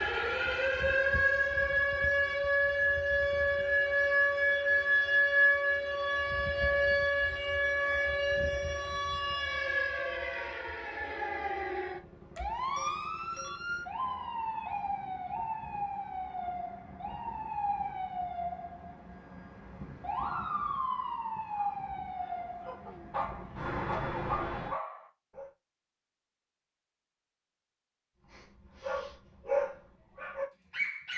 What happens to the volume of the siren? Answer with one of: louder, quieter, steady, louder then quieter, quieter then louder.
quieter.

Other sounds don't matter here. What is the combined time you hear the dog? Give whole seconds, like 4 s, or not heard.
7 s.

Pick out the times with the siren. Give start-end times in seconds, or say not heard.
0.0-24.8.